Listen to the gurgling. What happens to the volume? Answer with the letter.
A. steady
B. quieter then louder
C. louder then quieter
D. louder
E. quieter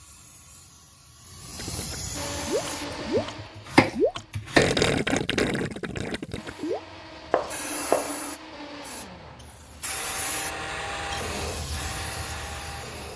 C.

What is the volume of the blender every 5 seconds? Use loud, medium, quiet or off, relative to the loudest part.
loud, medium, loud.